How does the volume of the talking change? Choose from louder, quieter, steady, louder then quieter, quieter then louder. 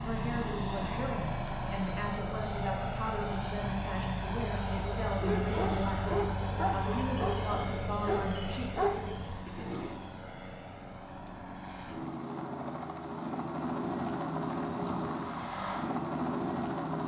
steady.